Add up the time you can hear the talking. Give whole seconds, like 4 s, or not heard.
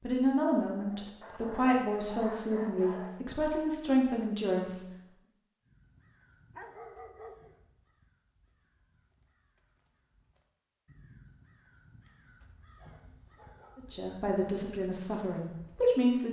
7 s.